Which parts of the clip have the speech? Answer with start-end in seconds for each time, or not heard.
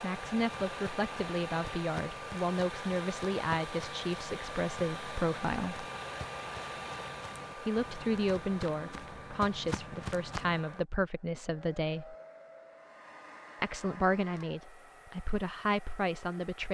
0.0-5.8, 7.5-12.2, 13.6-16.6.